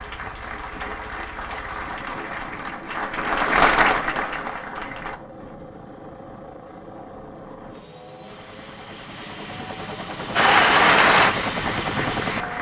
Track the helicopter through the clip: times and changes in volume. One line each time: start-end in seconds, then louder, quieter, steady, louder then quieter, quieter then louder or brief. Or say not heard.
0.0-12.5 louder.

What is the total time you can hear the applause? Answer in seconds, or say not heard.
7 s.